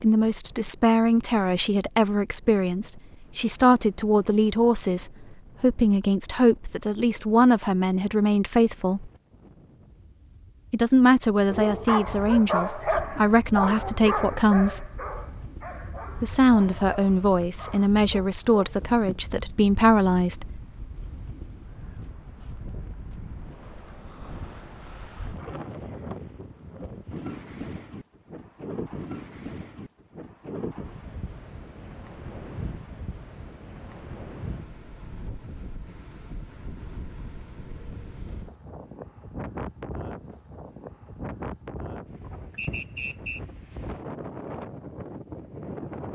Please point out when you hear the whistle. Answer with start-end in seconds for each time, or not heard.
42.5-43.4.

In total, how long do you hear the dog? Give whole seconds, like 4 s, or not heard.
8 s.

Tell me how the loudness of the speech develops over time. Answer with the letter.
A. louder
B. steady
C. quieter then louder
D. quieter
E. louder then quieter
B.